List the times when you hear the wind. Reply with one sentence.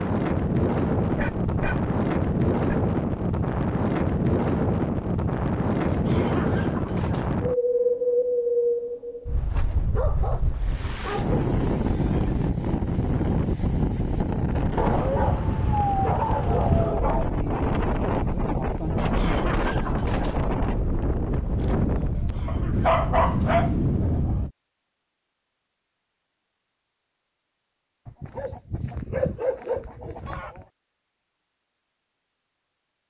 You can hear the wind from 0.0 to 24.5 s.